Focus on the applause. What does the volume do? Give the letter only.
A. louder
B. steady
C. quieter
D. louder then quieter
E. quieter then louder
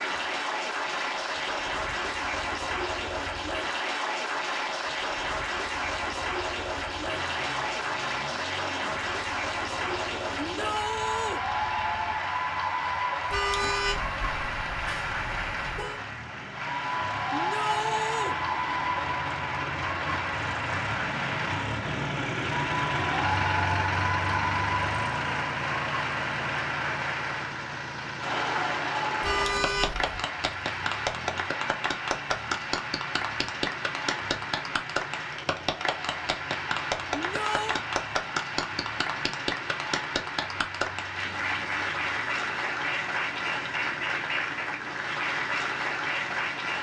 B.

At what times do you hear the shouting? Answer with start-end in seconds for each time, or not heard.
10.3-11.4, 17.3-18.4, 37.1-37.8.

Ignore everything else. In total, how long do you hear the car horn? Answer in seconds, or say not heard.
4 s.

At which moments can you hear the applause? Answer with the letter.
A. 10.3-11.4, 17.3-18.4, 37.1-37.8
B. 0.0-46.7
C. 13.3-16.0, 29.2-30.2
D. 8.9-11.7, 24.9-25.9
B.